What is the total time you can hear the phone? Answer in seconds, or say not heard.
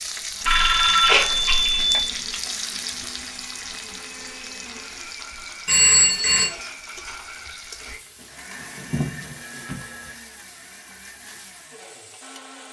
4 s.